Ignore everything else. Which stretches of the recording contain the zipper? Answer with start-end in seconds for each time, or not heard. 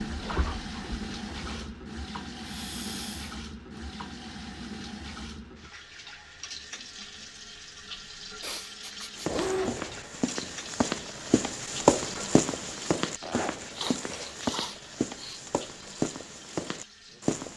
0.1-1.7, 9.2-10.1, 13.2-14.3.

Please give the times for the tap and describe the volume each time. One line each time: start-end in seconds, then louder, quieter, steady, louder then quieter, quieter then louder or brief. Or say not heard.
0.0-17.4 quieter.